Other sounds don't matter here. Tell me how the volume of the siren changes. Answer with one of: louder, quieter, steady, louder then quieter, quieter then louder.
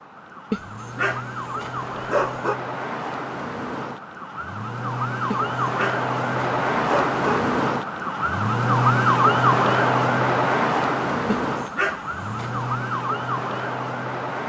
louder then quieter.